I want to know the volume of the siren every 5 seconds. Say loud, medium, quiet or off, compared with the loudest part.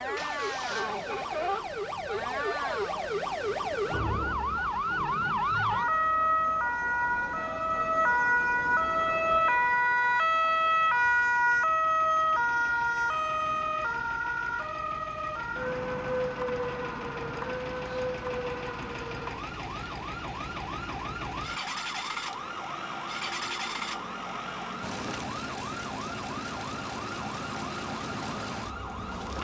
medium, loud, loud, medium, quiet, quiet.